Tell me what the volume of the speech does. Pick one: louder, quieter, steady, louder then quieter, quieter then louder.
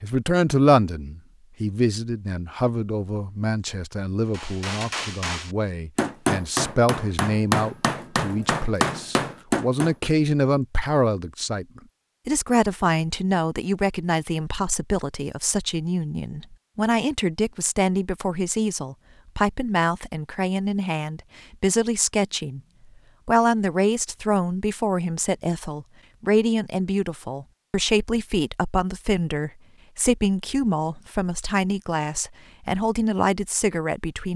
steady.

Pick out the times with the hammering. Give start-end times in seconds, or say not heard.
4.3-9.9.